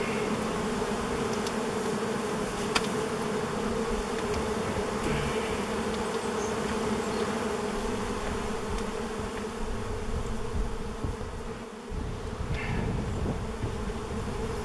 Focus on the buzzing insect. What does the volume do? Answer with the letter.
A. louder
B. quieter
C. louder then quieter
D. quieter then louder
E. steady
B.